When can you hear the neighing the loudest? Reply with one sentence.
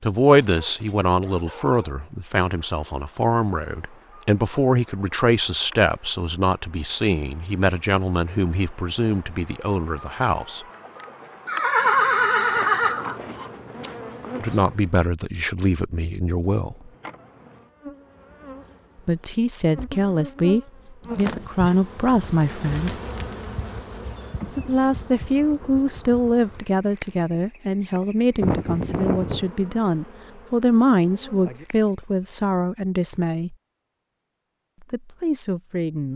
The volume of the neighing peaks at 12 seconds.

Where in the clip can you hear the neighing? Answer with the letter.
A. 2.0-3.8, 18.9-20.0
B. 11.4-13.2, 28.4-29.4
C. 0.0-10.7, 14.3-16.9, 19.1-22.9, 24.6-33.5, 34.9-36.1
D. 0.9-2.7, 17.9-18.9
B.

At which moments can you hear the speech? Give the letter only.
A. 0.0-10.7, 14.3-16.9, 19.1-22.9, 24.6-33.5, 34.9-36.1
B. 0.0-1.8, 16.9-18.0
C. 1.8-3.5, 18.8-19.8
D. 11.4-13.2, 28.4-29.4
A.